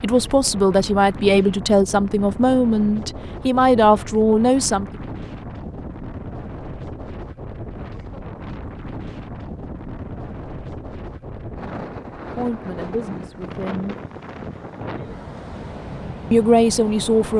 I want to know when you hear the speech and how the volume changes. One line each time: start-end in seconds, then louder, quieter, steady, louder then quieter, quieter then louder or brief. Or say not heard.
0.0-4.9 steady
12.3-13.9 brief
16.3-17.3 brief.